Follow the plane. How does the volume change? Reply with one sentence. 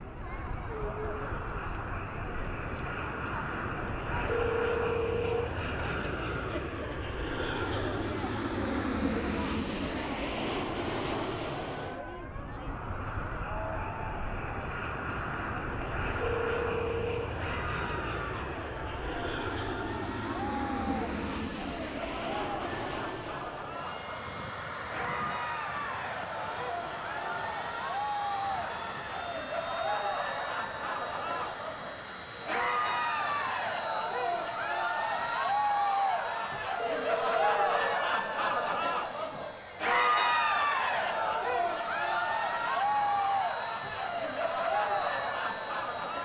The loudness of the plane goes down.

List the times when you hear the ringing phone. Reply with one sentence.
The ringing phone can be heard from 4.2 to 5.5 s, from 16.2 to 17.3 s and from 36.8 to 37.9 s.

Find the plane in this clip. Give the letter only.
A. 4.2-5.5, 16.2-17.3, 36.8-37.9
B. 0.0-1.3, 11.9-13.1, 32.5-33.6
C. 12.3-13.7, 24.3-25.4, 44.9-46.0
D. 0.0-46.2
D.